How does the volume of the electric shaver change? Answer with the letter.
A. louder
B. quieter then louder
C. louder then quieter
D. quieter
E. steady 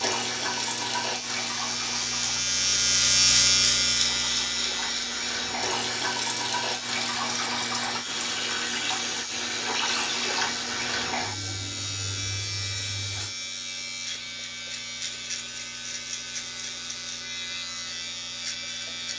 D.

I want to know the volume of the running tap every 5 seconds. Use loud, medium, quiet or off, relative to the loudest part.
loud, loud, loud, off.